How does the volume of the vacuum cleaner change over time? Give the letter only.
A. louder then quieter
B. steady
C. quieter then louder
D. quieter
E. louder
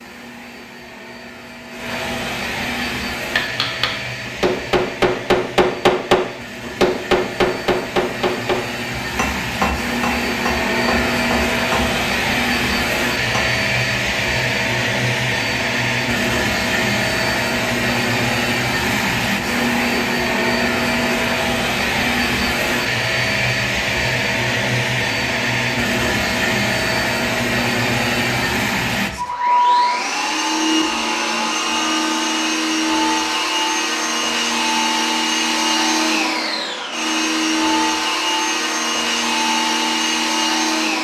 E.